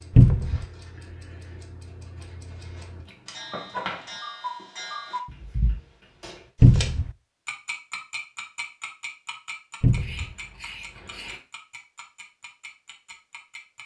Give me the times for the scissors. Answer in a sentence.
The scissors can be heard from 3.0 to 4.1 s and from 10.0 to 11.4 s.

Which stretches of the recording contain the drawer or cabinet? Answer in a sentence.
The drawer or cabinet can be heard from 0.1 to 0.7 s, from 6.6 to 7.1 s and from 9.8 to 10.3 s.